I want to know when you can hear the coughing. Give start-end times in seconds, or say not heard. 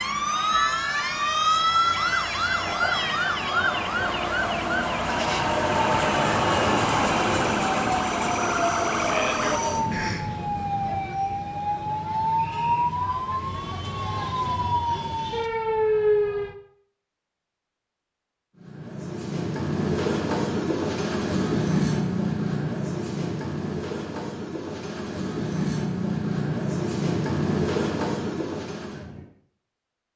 9.9-10.3.